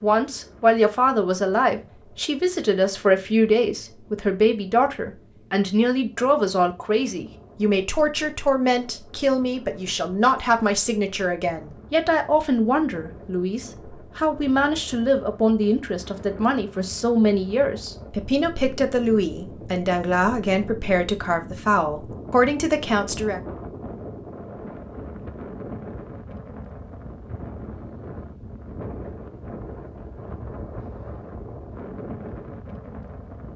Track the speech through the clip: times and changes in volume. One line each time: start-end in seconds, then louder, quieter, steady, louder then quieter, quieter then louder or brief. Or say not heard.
0.0-23.4 steady.